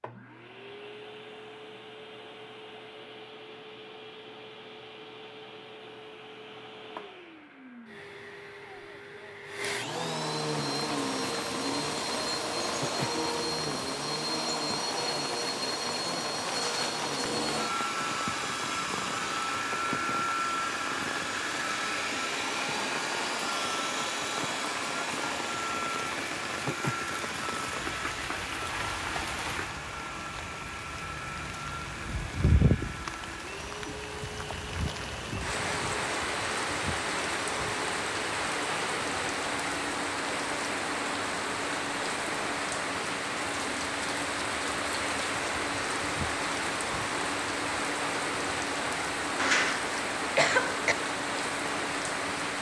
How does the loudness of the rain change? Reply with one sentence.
The volume of the rain goes up.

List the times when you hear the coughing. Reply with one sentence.
The coughing can be heard from 49.4 to 51.0 s.